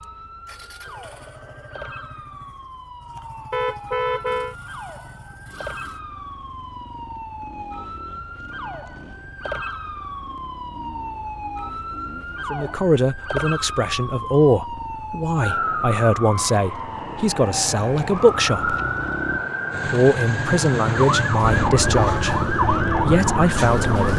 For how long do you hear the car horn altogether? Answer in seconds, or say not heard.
2 s.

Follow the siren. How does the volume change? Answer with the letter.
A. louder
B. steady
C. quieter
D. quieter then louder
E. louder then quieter
A.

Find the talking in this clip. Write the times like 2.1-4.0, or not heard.
12.5-18.8, 19.9-24.1.